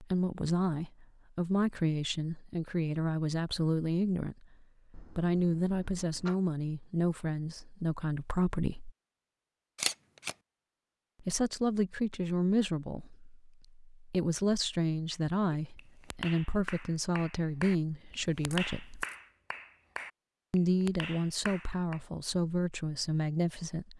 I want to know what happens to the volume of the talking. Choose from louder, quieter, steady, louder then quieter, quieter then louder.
steady.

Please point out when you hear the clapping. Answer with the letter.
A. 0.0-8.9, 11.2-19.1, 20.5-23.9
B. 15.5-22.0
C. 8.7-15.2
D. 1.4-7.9
B.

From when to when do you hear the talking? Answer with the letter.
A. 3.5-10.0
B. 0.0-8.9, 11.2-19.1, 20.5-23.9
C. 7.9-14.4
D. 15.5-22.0
B.